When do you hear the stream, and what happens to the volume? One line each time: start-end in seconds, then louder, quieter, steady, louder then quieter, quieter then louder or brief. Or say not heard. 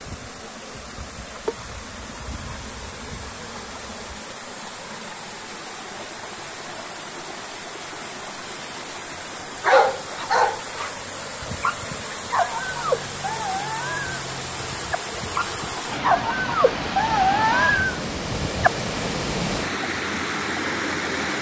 0.0-21.3 louder.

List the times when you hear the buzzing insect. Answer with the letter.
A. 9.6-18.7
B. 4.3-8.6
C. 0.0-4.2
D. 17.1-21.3
C.